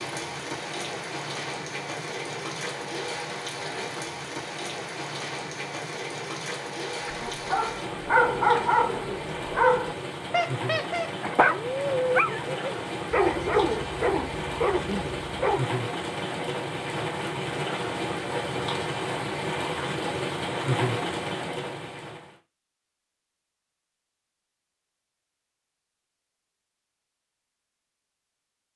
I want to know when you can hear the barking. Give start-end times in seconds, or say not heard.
7.0-15.7.